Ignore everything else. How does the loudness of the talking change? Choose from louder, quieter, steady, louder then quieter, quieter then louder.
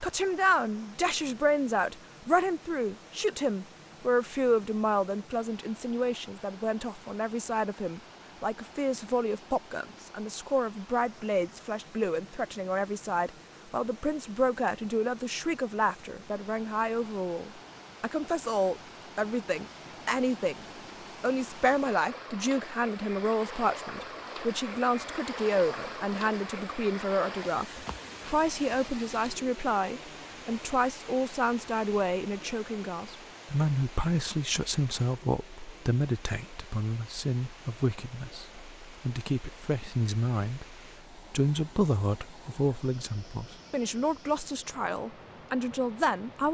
steady.